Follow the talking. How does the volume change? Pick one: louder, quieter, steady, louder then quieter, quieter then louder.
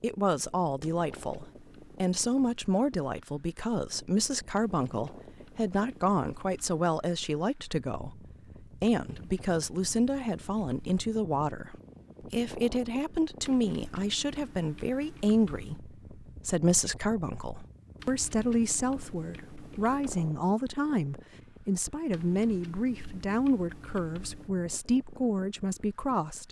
steady.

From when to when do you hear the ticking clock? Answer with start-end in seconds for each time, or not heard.
not heard.